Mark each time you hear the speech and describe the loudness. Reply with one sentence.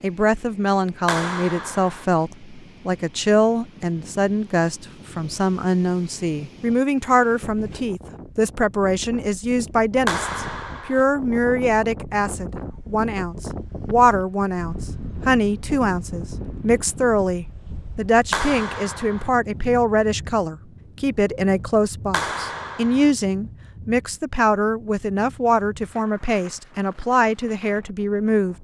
The speech can be heard from 0.0 to 28.6 s, at a steady volume.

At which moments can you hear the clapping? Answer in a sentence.
The clapping can be heard from 1.1 to 2.0 s, from 10.1 to 11.1 s, from 18.3 to 19.3 s and from 22.1 to 23.1 s.